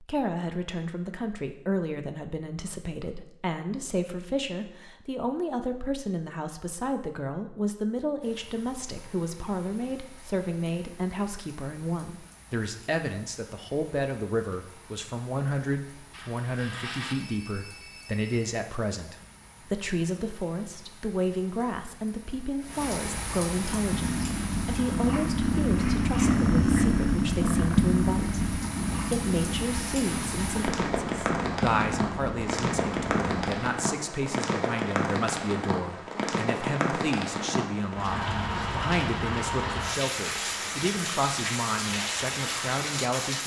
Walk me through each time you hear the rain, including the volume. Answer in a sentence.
You can hear the rain from 8.2 to 43.4 s, getting louder.